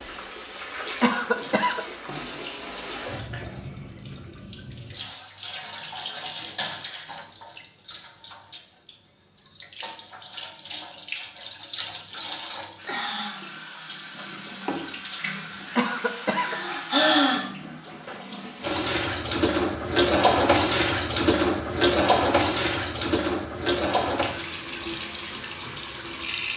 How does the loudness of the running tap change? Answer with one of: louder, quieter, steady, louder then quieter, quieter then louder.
louder.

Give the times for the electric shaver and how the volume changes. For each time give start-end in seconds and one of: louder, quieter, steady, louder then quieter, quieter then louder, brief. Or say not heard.
not heard.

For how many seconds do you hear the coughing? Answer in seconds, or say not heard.
2 s.